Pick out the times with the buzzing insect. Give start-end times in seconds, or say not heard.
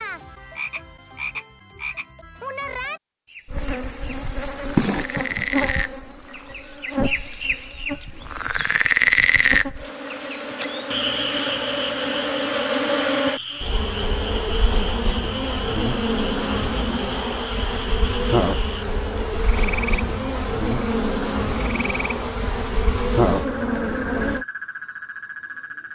3.5-24.4.